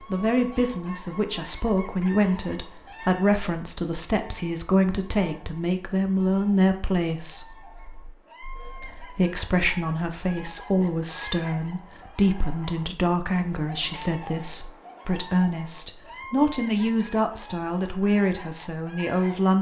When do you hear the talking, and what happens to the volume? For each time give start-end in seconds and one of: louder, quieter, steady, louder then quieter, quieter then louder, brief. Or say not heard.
0.1-19.5 steady.